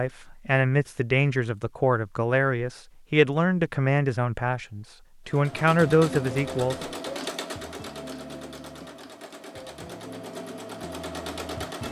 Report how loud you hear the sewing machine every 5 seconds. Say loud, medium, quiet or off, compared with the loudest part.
off, loud, loud.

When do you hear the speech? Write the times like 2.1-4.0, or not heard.
0.0-6.8.